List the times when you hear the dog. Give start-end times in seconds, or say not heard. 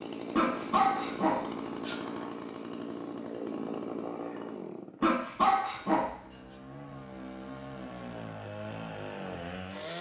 0.3-1.9, 5.0-6.1.